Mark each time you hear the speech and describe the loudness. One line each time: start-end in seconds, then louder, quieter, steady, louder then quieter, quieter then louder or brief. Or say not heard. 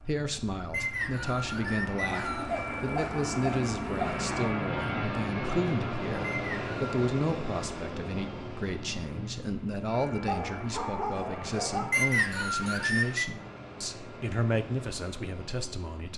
0.0-16.1 steady.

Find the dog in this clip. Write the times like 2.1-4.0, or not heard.
2.0-4.3, 10.2-12.0.